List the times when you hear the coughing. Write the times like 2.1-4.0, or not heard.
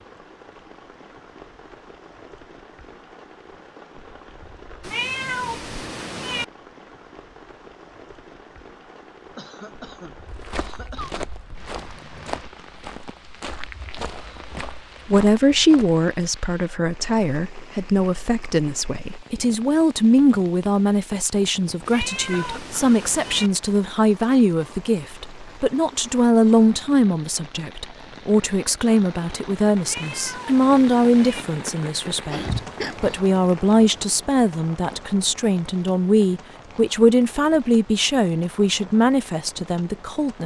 9.3-11.3, 22.3-23.0, 32.3-33.2.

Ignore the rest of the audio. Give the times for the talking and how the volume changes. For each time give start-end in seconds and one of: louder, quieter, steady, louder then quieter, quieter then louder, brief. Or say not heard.
15.1-40.4 steady.